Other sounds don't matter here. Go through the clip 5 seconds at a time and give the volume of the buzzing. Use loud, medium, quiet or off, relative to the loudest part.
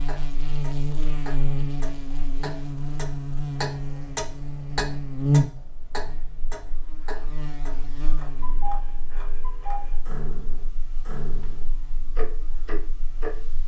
loud, loud, quiet.